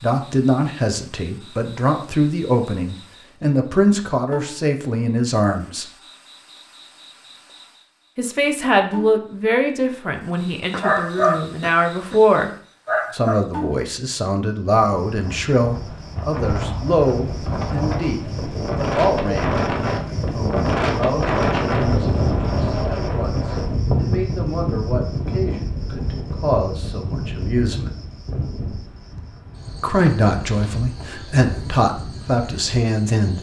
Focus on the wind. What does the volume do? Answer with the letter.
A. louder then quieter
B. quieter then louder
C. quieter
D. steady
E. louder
A.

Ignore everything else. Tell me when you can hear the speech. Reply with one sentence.
The speech can be heard from 0.0 to 5.9 s, from 8.2 to 12.5 s, from 13.1 to 27.9 s and from 29.8 to 33.3 s.